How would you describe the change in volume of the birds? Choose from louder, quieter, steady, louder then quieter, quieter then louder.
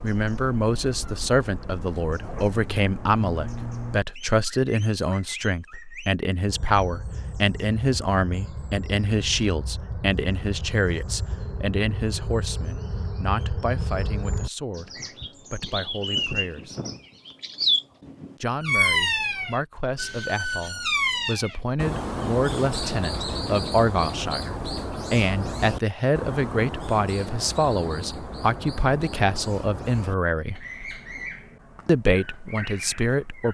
louder then quieter.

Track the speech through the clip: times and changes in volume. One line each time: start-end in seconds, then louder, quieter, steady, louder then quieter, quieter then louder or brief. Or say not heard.
0.0-16.8 quieter
18.4-30.6 louder
31.9-33.4 brief.